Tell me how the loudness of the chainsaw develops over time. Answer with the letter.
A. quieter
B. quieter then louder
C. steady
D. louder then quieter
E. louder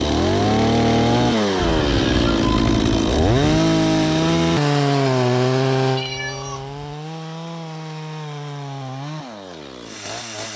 A.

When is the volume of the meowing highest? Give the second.
3 s.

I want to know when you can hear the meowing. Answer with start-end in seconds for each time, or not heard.
1.6-3.4, 6.0-6.8.